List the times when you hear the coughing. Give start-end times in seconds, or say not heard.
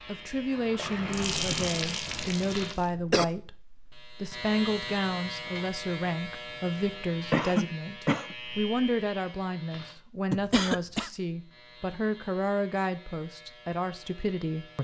1.4-3.2, 7.3-8.3, 10.3-11.1.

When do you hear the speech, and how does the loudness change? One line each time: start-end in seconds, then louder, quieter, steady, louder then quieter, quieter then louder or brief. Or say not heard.
0.0-14.8 steady.